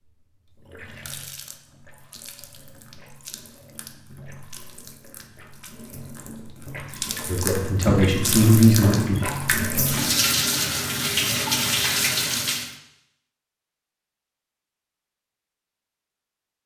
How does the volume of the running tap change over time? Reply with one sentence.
The volume of the running tap goes up.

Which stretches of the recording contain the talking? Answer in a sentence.
You can hear the talking from 7.2 to 9.2 s.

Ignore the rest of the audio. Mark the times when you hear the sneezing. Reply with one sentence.
The sneezing can't be heard in this clip.